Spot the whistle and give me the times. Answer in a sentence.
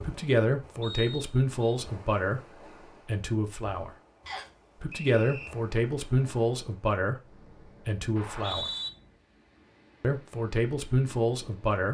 The whistle can be heard from 0.8 to 1.8 s, from 4.2 to 5.5 s and from 8.2 to 8.9 s.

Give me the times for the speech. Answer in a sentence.
The speech can be heard from 0.0 to 3.9 s, from 4.8 to 8.7 s and from 10.0 to 11.9 s.